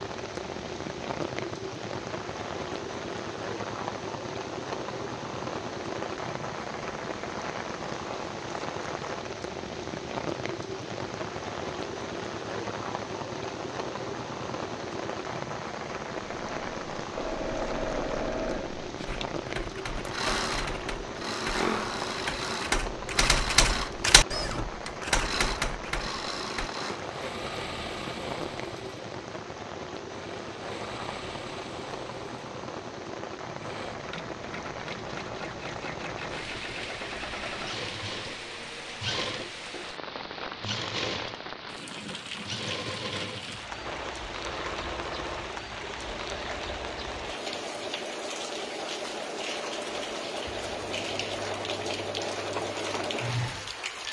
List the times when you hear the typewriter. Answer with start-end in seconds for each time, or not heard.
19.1-26.7.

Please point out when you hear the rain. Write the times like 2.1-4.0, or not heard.
0.0-54.0.